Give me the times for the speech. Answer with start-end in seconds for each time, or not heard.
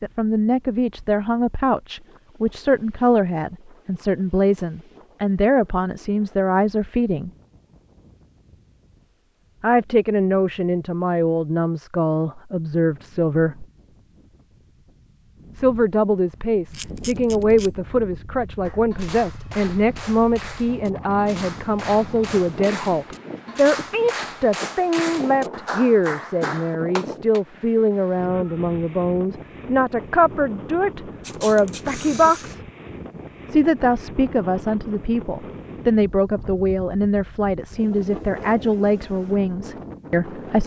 0.0-7.3, 9.6-13.7, 15.6-32.6, 33.5-40.6.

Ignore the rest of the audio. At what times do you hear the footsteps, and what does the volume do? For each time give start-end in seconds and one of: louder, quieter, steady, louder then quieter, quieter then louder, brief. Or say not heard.
not heard.